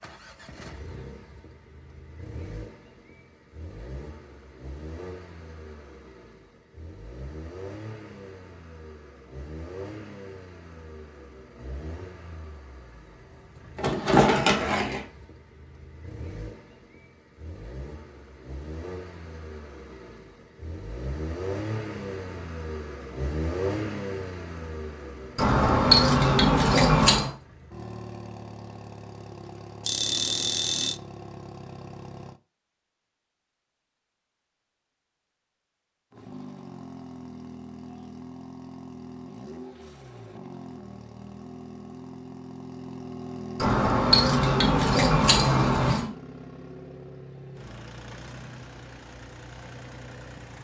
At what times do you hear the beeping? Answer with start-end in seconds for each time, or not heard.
29.9-31.0.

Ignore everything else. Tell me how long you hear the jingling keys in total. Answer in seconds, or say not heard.
6 s.